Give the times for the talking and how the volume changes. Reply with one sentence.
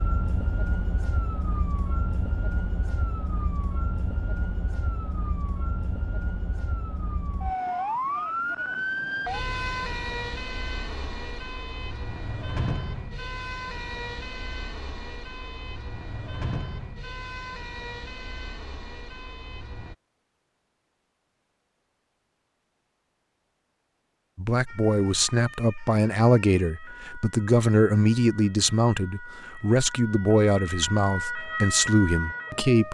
You can hear the talking from 24.4 to 32.8 s, at a steady volume.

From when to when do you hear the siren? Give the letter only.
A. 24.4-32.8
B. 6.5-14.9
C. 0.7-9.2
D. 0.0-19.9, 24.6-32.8
D.